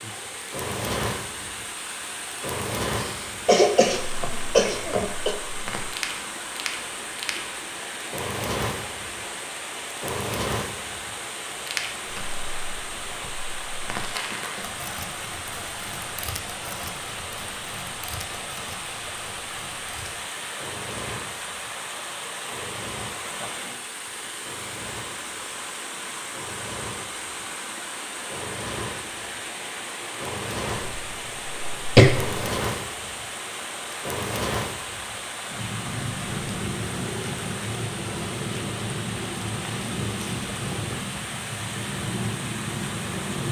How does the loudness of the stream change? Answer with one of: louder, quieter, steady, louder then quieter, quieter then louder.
steady.